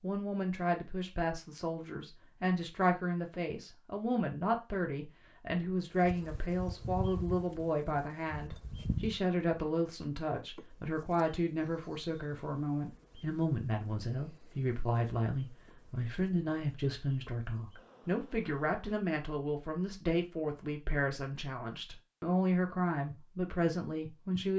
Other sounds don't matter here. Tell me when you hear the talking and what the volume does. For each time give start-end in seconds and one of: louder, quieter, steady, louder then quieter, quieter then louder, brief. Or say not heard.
0.0-24.5 steady.